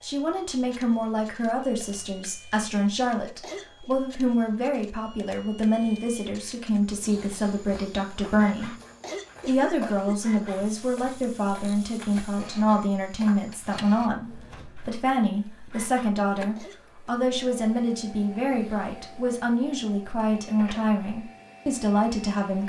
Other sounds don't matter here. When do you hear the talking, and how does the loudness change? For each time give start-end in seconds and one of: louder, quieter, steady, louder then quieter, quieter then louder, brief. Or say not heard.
0.0-8.8 steady
9.4-22.6 steady.